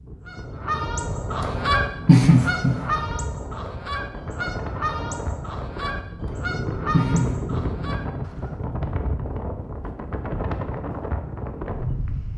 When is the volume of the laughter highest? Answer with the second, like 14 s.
2 s.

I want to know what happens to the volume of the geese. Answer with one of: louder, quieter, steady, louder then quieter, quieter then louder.
quieter.